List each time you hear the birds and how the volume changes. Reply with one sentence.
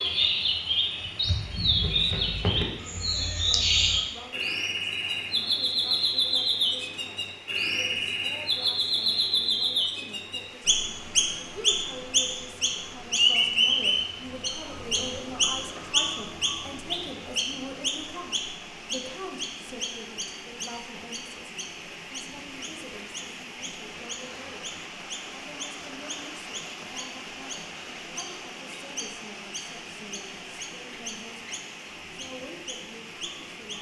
The birds can be heard from 0.0 to 33.7 s, getting quieter.